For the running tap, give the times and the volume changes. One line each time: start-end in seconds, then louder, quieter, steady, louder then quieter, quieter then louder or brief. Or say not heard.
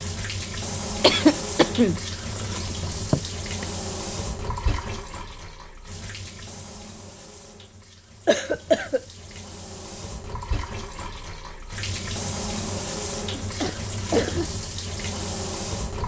0.0-16.0 quieter then louder.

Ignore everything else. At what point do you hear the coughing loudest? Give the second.
1 s.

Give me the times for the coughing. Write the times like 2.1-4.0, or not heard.
1.0-3.6, 8.2-9.0, 13.4-14.4.